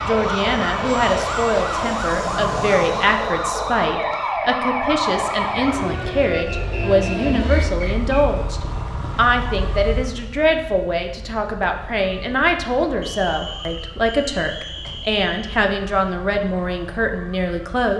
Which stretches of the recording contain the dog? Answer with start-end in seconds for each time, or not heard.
not heard.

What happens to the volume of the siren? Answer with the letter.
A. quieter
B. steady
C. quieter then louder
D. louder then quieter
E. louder
A.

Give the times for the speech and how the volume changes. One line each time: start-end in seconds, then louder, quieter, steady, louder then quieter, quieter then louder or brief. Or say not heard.
0.0-17.9 steady.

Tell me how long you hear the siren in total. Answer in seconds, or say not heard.
18 s.